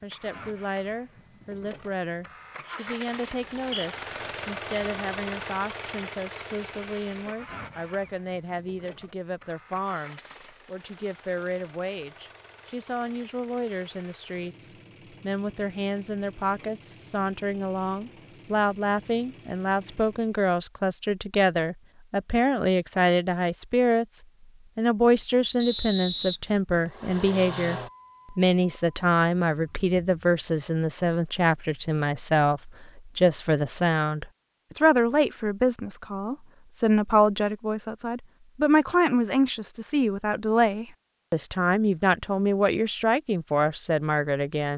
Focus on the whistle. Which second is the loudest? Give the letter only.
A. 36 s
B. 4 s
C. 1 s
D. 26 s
D.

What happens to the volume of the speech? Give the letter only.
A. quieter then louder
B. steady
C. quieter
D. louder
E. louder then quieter
D.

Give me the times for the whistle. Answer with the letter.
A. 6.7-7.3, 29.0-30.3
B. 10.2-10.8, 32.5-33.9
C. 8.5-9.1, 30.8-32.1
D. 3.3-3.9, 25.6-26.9
D.